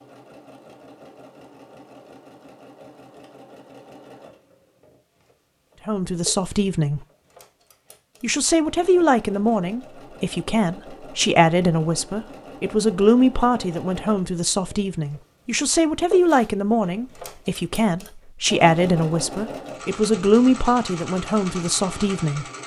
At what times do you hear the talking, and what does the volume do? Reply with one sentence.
The talking can be heard briefly from 5.8 to 7.0 s; and from 8.2 to 22.4 s, at a steady volume.